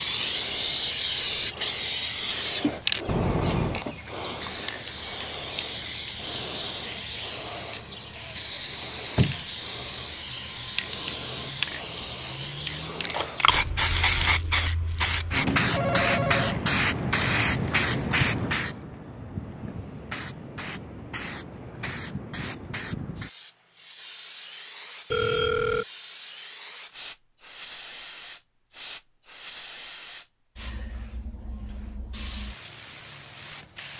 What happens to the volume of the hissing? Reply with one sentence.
The loudness of the hissing goes down.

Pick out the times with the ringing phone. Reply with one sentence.
You can hear the ringing phone from 3.0 to 3.9 s, from 15.4 to 16.6 s and from 25.1 to 25.9 s.